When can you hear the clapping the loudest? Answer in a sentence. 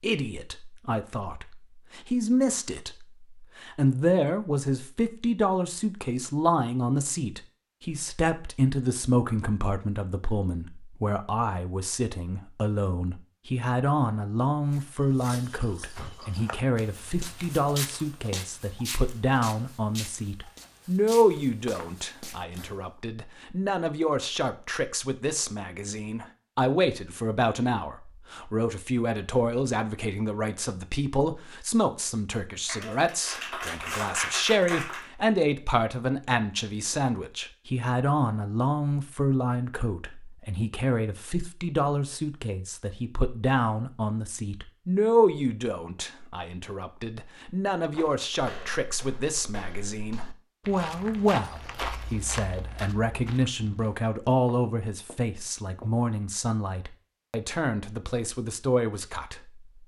The loudest moment of the clapping is at 34 seconds.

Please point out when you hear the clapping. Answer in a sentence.
The clapping can be heard from 32.6 to 35.1 s.